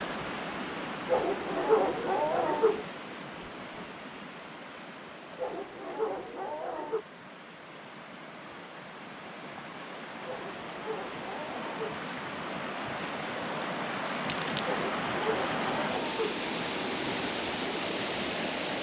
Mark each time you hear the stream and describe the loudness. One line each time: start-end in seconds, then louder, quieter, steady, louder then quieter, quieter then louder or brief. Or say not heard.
0.0-18.7 quieter then louder.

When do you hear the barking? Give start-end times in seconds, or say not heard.
1.1-2.9, 5.3-7.0, 10.2-12.0, 14.7-16.4.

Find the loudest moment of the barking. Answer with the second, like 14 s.
2 s.